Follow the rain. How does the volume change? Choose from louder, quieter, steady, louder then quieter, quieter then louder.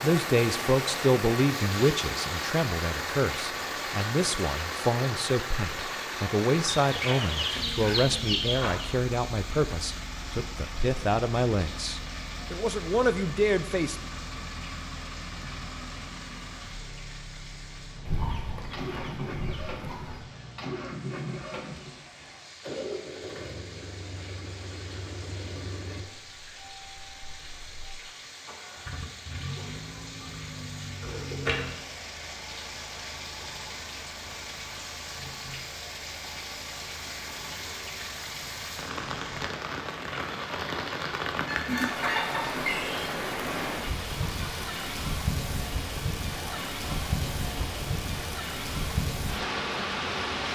quieter then louder.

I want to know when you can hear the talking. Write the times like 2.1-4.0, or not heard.
0.0-14.0.